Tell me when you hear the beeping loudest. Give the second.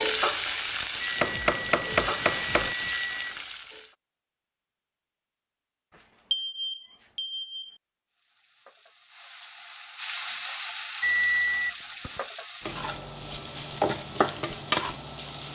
11 s.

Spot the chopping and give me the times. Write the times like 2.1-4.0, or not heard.
1.2-2.8.